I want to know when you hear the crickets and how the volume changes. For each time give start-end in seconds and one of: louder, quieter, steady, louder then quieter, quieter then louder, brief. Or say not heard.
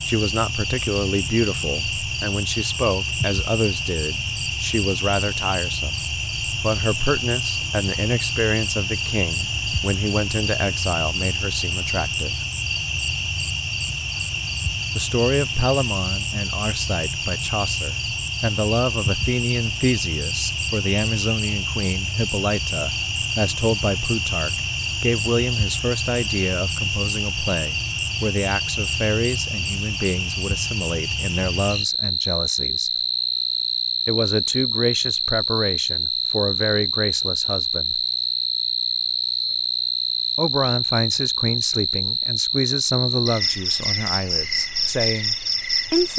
0.0-46.1 steady.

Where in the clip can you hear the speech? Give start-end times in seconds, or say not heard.
0.1-12.3, 14.9-32.9, 34.0-38.0, 40.4-46.1.